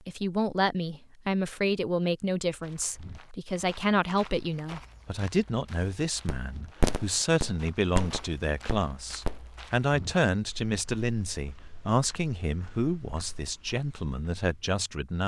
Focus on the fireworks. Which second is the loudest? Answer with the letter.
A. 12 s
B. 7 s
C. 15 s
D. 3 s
B.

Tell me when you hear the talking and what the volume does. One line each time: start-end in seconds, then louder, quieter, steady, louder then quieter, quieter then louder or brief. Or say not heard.
0.1-15.2 steady.